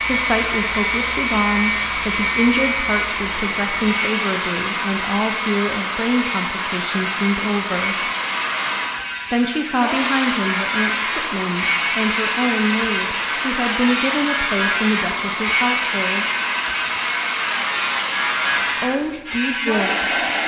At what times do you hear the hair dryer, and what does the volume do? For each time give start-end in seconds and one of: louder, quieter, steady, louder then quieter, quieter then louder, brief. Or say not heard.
0.0-20.4 steady.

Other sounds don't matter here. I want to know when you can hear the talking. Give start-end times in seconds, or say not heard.
0.1-8.1, 9.3-16.2, 18.8-20.1.